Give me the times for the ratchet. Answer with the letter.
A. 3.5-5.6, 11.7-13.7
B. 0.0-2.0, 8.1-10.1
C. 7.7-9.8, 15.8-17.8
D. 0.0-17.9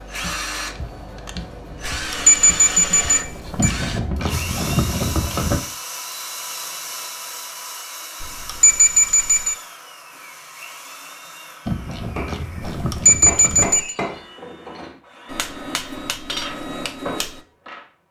A.